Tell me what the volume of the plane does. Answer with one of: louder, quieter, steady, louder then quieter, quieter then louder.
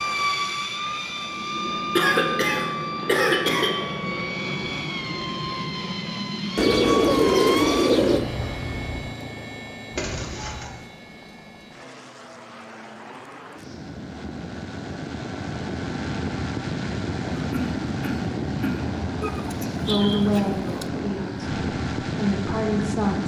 quieter then louder.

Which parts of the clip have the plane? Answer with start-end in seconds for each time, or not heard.
0.0-23.2.